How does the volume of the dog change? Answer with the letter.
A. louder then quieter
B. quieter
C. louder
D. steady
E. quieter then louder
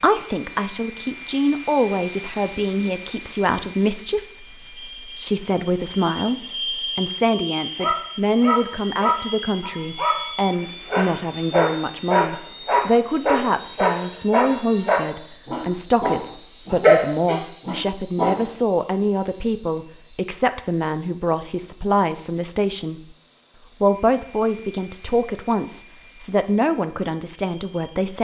C.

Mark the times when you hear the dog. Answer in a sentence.
The dog can be heard from 7.7 to 18.4 s.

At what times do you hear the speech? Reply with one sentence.
The speech can be heard from 0.0 to 23.1 s and from 23.8 to 28.1 s.